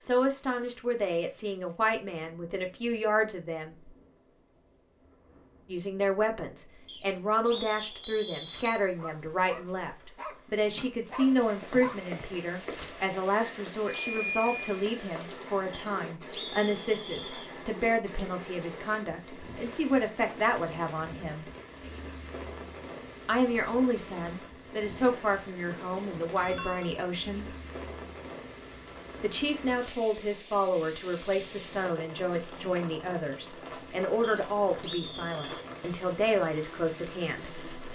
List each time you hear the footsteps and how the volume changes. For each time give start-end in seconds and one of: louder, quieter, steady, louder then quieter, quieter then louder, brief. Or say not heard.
not heard.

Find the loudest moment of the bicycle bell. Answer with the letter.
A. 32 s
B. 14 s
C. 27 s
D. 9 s
B.